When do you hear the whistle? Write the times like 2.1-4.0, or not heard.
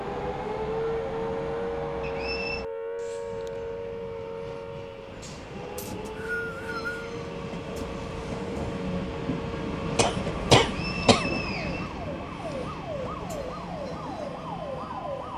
2.0-2.6, 5.8-6.9, 10.8-12.6.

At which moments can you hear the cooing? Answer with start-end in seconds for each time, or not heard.
not heard.